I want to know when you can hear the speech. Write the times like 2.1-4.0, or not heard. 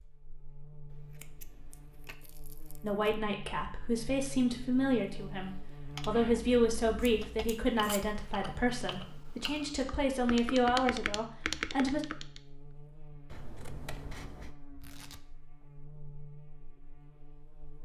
2.8-12.0.